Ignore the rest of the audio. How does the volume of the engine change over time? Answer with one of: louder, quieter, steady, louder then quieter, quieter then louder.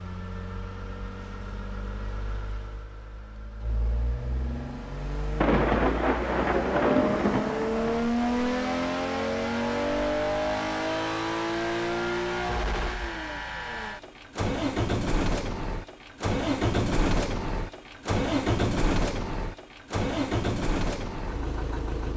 louder.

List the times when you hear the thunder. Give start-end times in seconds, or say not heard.
5.4-8.0.